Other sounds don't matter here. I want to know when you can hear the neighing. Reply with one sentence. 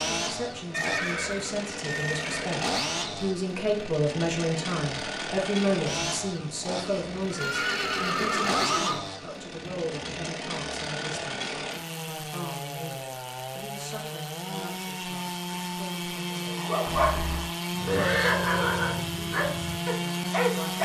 The neighing can be heard from 0.7 to 2.5 s, from 7.3 to 9.0 s and from 16.9 to 18.4 s.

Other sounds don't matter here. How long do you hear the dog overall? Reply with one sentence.
You can hear the dog for 4 seconds altogether.